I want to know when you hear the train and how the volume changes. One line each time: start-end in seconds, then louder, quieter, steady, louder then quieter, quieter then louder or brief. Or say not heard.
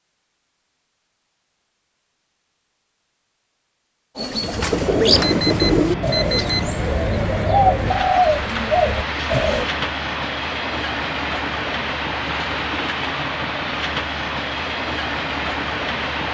4.3-16.2 steady.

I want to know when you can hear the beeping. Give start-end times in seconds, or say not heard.
5.2-6.8.